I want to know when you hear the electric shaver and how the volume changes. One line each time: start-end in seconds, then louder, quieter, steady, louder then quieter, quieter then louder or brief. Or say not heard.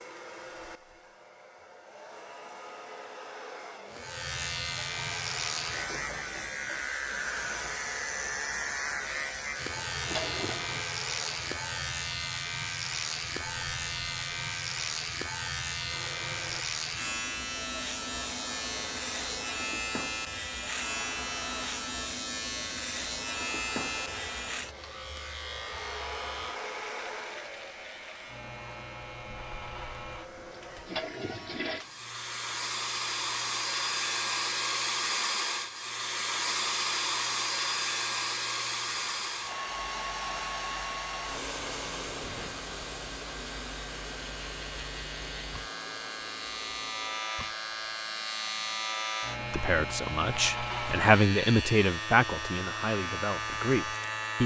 3.9-54.4 quieter then louder.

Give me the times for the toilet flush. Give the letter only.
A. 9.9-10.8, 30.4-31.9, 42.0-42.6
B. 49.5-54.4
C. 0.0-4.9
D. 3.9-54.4
A.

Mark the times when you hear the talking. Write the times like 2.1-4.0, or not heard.
49.5-54.4.